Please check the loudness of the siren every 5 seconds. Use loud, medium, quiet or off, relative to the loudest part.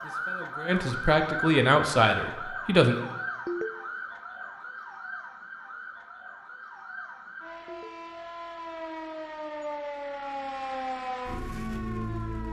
loud, medium, loud.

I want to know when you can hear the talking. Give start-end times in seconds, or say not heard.
0.0-3.0.